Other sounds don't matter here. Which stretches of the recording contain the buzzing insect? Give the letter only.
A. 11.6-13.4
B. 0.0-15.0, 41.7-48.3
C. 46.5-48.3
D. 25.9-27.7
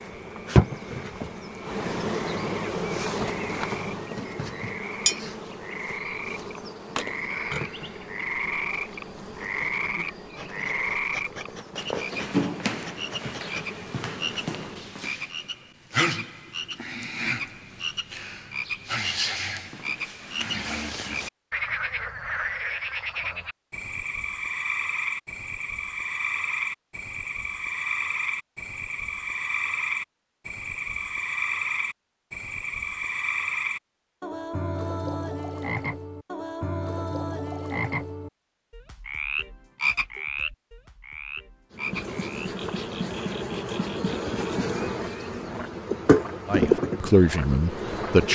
B.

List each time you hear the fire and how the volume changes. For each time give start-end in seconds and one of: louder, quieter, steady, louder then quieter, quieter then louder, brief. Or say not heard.
not heard.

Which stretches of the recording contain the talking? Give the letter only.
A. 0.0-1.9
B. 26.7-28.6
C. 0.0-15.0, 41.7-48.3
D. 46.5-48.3
D.